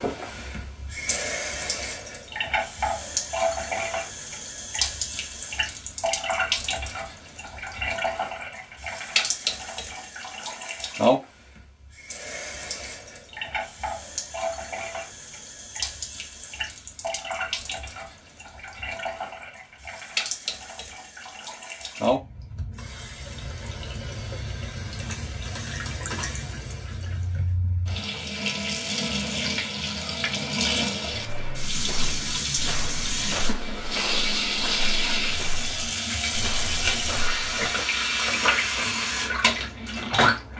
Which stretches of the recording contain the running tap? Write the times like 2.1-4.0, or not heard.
0.0-40.5.